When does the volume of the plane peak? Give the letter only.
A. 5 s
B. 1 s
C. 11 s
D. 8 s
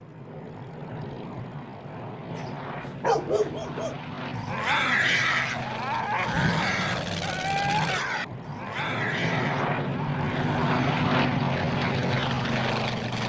C.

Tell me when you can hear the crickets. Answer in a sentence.
The crickets can't be heard in this clip.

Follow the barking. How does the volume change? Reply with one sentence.
The volume of the barking goes down.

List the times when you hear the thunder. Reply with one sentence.
The thunder can be heard from 6.2 to 7.9 s.